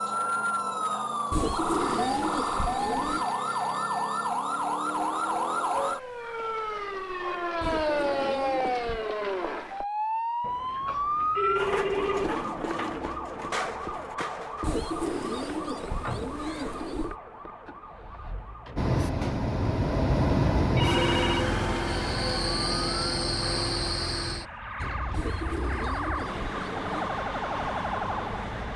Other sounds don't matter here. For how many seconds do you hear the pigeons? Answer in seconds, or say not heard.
8 s.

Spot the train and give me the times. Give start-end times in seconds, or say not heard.
18.8-28.7.